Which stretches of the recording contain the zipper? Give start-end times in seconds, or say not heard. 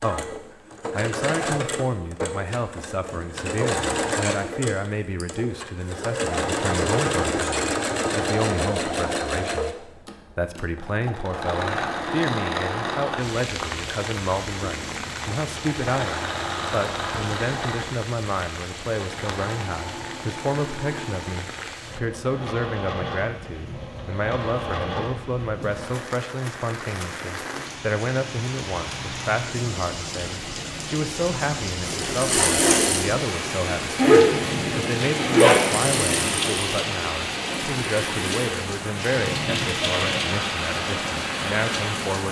34.0-35.6.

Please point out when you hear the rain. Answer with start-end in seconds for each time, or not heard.
13.2-42.2.